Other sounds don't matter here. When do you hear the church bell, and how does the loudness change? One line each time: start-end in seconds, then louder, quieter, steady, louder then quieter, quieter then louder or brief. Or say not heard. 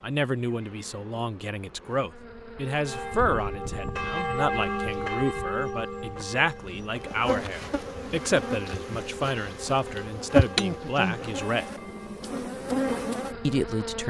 2.9-13.7 quieter.